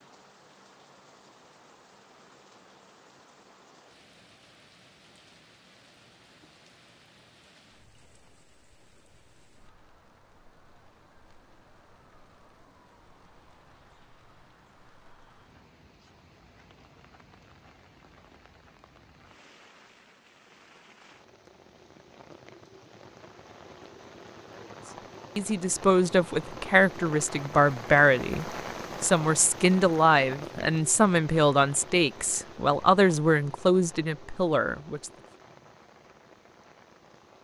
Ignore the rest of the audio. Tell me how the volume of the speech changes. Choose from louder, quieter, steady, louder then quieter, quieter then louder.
steady.